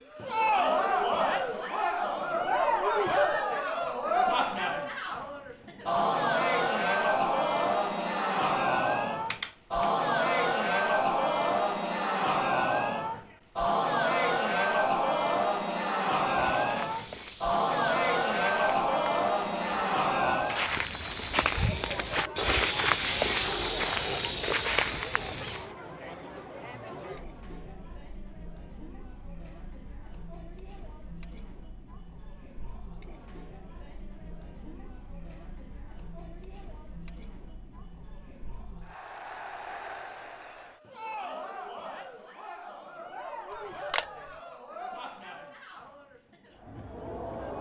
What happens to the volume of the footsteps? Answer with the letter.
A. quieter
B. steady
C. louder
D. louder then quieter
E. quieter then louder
C.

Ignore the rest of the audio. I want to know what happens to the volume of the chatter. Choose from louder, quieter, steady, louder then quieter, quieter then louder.
quieter then louder.